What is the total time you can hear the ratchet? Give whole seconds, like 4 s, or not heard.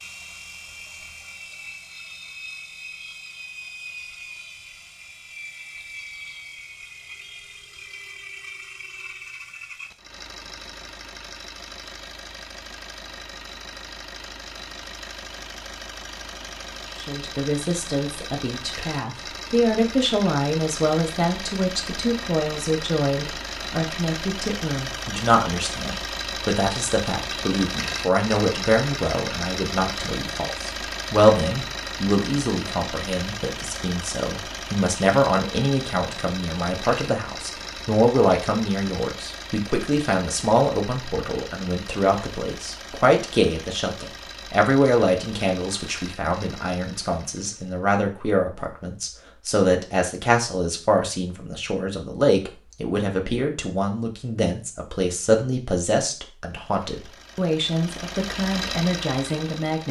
not heard.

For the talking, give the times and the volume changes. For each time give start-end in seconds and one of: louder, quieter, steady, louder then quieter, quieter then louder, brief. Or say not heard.
17.0-59.8 steady.